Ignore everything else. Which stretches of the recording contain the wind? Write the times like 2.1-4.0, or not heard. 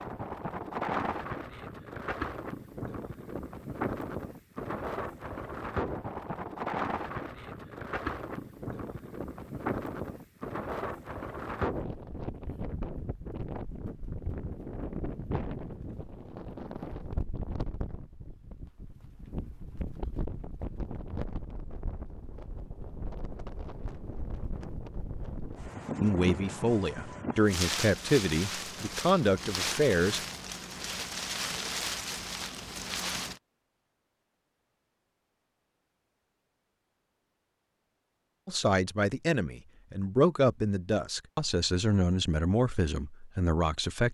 0.0-33.4.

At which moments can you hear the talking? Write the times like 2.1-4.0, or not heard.
26.0-30.2, 38.5-44.0.